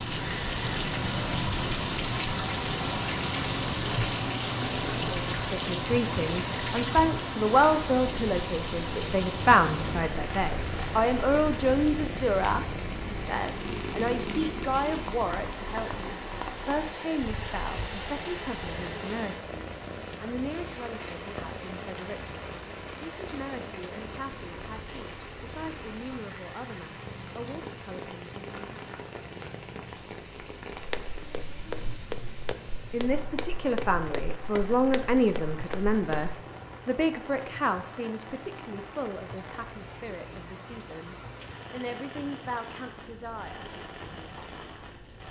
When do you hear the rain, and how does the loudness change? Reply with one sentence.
The rain can be heard from 0.0 to 45.2 s, getting quieter.